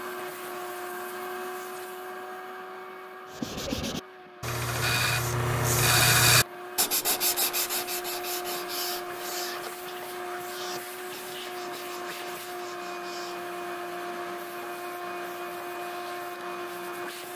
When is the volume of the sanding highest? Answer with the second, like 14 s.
6 s.